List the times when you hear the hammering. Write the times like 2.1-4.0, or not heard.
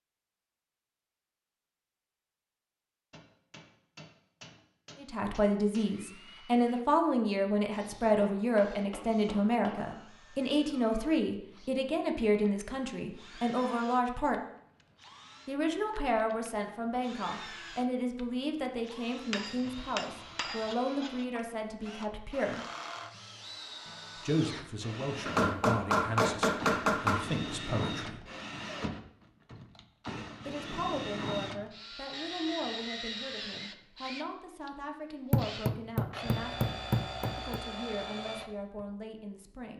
3.1-5.8, 8.2-9.8, 19.3-20.8, 25.2-27.2, 35.3-37.6.